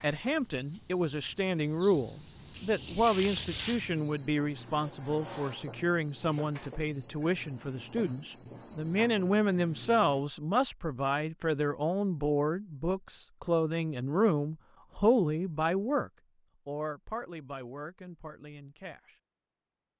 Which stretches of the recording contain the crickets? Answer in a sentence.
The crickets can be heard from 0.0 to 10.2 s.